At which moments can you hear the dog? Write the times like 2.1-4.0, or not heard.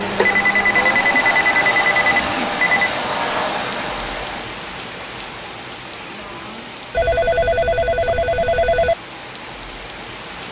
not heard.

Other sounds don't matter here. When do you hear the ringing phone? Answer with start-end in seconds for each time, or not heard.
0.2-2.9, 6.9-8.9.